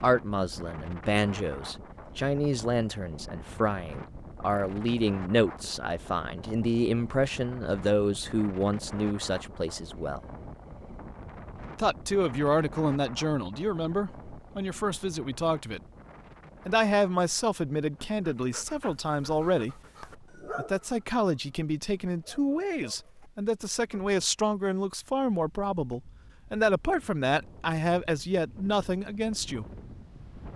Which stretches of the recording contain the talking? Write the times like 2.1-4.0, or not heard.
0.0-10.2, 11.8-15.8, 16.6-19.8, 20.6-29.6.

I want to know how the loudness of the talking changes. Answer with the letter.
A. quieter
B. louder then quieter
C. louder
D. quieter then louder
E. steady
E.